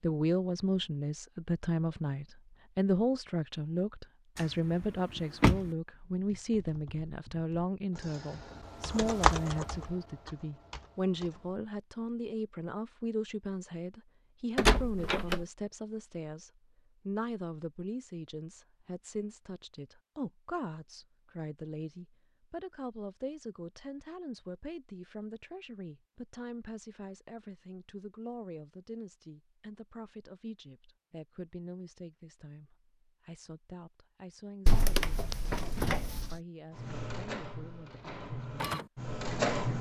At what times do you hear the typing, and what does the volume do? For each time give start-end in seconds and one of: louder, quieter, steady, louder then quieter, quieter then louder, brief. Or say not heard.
5.9-11.6 louder then quieter.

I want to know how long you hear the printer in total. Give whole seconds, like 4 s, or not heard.
3 s.